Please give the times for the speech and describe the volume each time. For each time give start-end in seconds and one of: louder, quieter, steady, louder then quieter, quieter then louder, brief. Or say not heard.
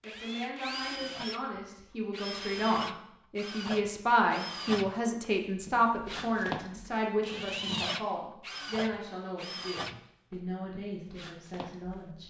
0.0-12.2 louder then quieter.